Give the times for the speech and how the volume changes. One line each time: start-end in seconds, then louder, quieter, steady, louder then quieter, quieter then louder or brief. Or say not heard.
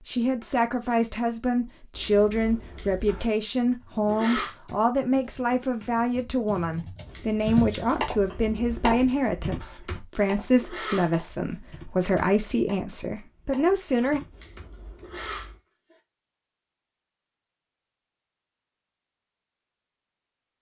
0.1-14.2 steady.